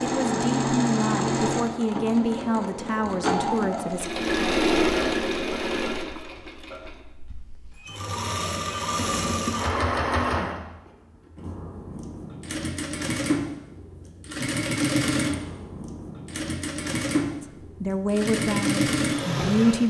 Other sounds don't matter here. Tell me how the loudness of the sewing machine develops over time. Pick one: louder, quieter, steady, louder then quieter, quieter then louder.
steady.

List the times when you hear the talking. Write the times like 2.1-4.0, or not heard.
0.0-4.0, 17.4-19.8.